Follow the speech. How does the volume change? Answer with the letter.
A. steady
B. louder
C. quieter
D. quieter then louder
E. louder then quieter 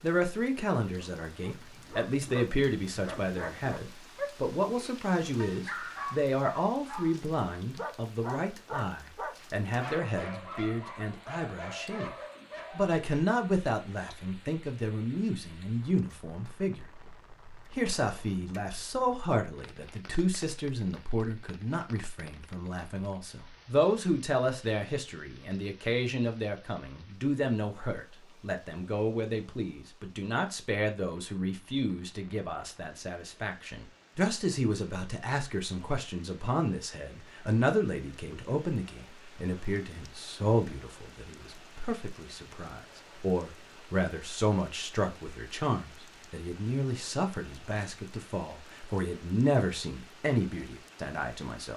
A.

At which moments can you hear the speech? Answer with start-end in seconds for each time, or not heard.
0.0-12.2, 12.8-16.9, 17.7-51.7.